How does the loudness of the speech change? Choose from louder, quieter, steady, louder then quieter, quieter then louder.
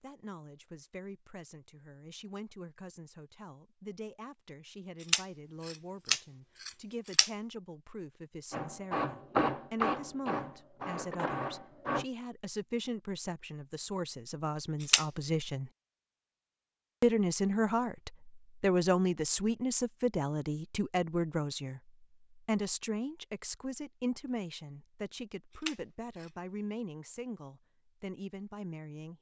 louder then quieter.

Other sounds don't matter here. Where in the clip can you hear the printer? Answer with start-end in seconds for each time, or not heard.
8.5-12.1.